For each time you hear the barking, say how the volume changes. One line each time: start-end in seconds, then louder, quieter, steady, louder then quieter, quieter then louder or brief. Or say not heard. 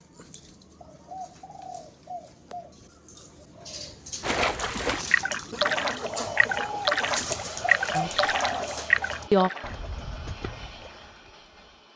not heard.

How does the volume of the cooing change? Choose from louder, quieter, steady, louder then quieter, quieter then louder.
louder then quieter.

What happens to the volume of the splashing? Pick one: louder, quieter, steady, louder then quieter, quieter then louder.
quieter.